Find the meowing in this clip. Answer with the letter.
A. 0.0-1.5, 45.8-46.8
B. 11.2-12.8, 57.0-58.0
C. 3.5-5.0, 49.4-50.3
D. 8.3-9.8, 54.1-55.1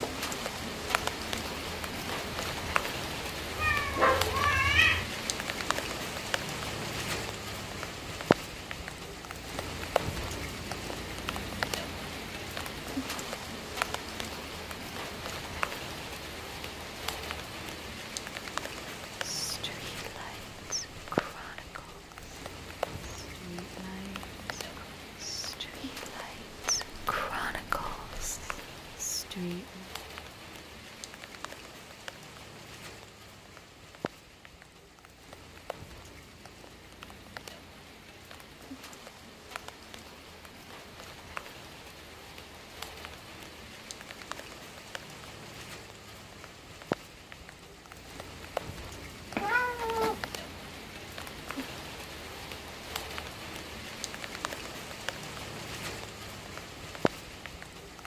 C.